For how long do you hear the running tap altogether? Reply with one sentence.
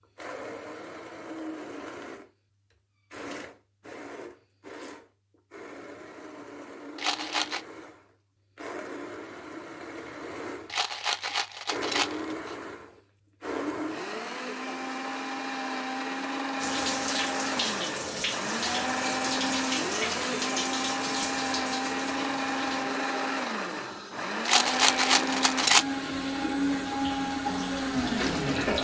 You can hear the running tap for 12 seconds altogether.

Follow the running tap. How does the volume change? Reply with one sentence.
The volume of the running tap goes down, then up.